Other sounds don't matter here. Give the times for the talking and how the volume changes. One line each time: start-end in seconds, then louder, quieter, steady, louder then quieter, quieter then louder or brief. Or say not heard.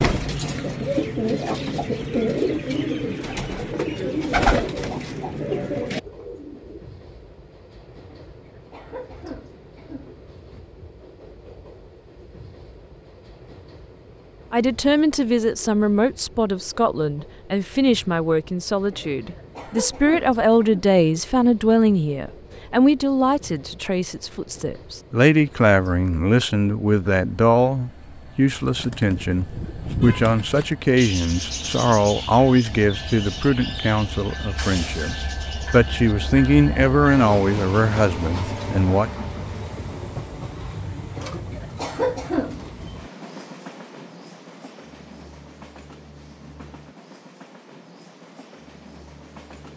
14.5-39.1 steady.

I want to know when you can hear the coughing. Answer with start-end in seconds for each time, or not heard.
8.1-10.6, 18.9-20.9, 41.1-42.7.